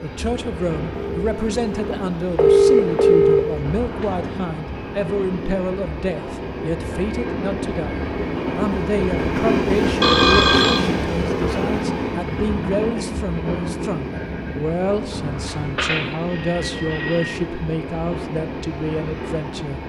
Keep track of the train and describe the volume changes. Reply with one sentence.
The volume of the train goes up, then down.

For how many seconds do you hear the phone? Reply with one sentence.
You can hear the phone for 5 seconds altogether.